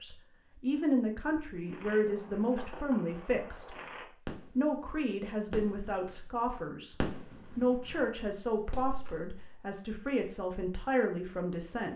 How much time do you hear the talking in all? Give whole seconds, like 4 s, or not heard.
11 s.